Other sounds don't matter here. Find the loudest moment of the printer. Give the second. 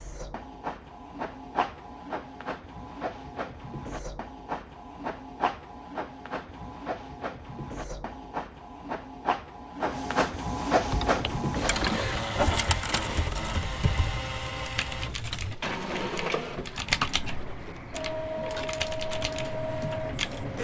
11 s.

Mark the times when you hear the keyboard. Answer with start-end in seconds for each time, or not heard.
10.8-20.5.